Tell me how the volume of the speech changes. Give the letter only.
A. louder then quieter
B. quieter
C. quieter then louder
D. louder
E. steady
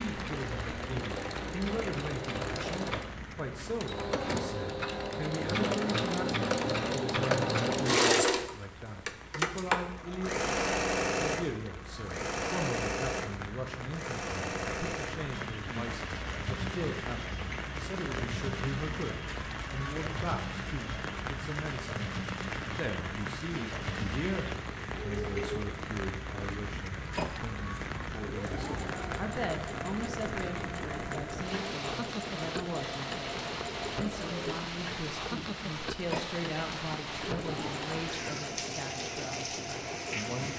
E.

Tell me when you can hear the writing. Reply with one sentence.
You can't hear the writing here.